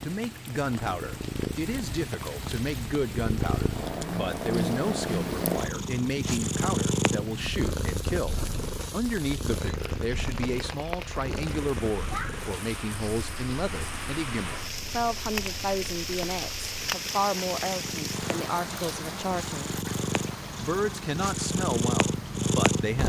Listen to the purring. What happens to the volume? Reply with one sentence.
The volume of the purring goes down, then up.